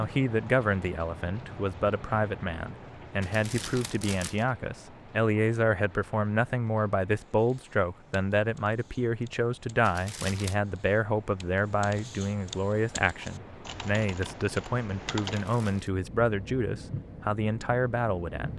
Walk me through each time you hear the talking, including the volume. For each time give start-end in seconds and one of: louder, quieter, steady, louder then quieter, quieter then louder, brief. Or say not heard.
0.0-18.5 steady.